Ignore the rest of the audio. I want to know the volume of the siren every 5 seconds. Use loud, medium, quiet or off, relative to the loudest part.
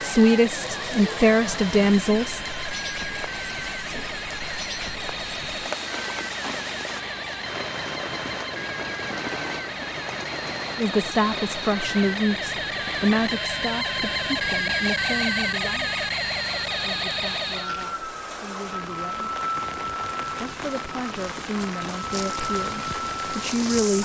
medium, medium, loud, loud, medium.